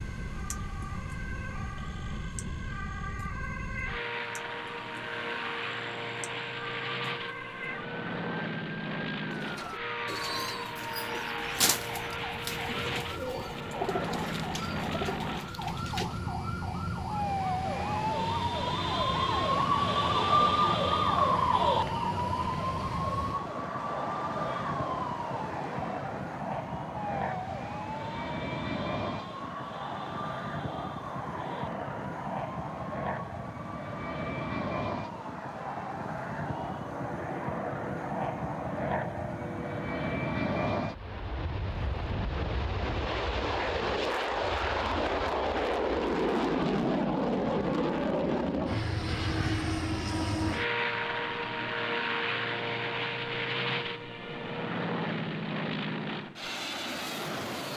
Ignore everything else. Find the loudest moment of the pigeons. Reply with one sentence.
The volume of the pigeons peaks at 12 seconds.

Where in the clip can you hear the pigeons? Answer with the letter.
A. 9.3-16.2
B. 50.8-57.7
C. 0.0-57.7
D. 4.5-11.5
A.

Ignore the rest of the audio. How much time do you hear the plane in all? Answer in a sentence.
You can hear the plane for 58 seconds altogether.